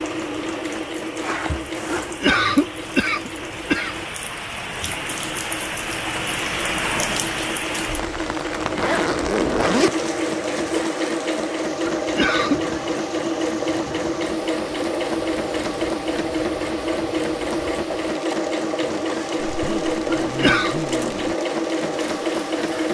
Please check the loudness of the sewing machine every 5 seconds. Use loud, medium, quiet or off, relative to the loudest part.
medium, medium, loud, loud, loud.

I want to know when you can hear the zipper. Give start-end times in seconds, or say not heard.
1.2-2.2, 8.7-10.6, 19.4-21.4.